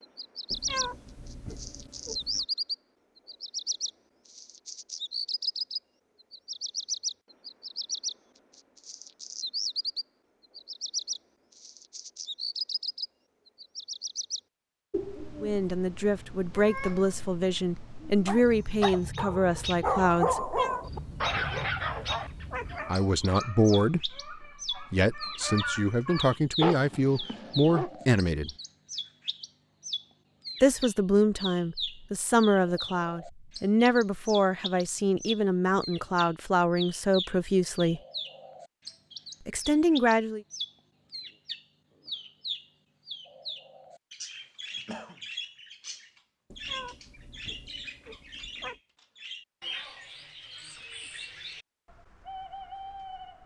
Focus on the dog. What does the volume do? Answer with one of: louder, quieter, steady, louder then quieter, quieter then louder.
quieter then louder.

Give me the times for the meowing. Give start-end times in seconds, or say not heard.
0.5-2.5, 20.4-22.9, 46.5-48.8.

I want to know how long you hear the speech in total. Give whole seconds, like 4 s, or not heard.
19 s.